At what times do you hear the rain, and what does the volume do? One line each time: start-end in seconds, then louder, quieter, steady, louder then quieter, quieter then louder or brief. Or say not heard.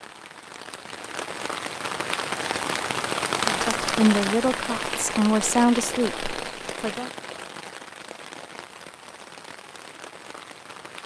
0.0-11.0 louder then quieter.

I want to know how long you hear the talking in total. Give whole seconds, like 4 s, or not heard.
4 s.